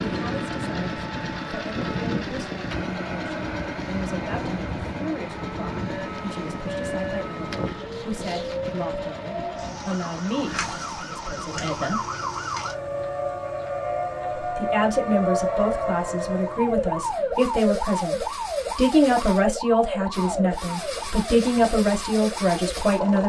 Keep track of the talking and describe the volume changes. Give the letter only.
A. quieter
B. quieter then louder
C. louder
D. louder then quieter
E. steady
C.